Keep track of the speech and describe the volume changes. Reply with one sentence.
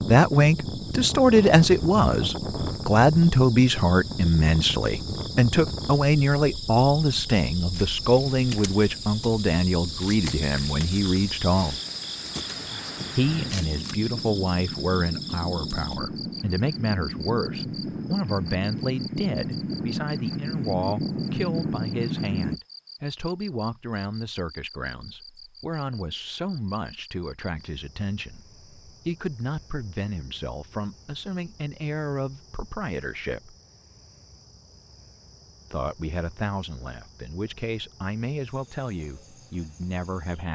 The volume of the speech goes down.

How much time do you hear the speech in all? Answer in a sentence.
You can hear the speech for 37 seconds altogether.